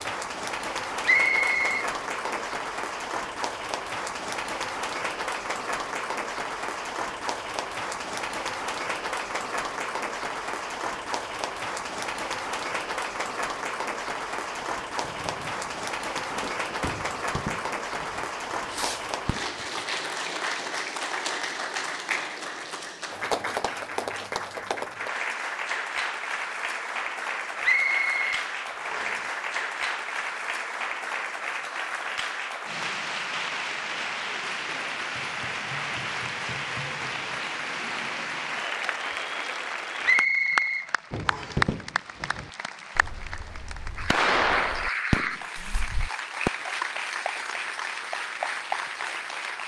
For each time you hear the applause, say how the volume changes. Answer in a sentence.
The applause can be heard from 0.0 to 49.6 s, at a steady volume.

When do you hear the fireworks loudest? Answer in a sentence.
The volume of the fireworks peaks at 44 seconds.